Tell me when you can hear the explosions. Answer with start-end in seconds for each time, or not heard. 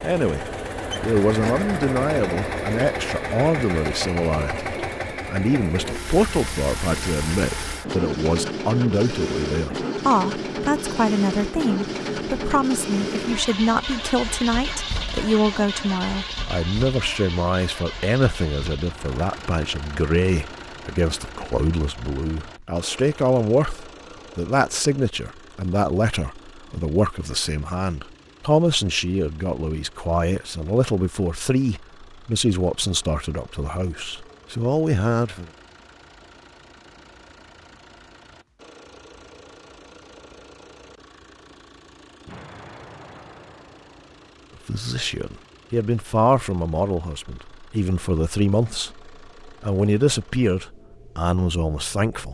42.2-44.4.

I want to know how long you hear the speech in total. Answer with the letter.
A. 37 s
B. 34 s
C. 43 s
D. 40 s
C.